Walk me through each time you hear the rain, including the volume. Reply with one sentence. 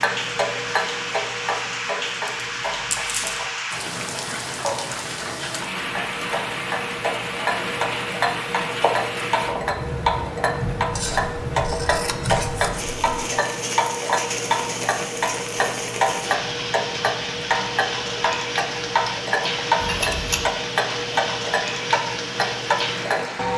The rain can be heard from 0.0 to 23.5 s, at a steady volume.